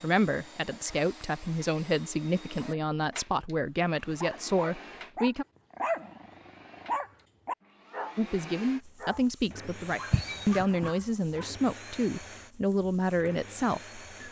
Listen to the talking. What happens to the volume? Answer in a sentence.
The volume of the talking stays about the same.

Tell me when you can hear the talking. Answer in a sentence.
The talking can be heard from 0.0 to 5.5 s and from 8.2 to 14.0 s.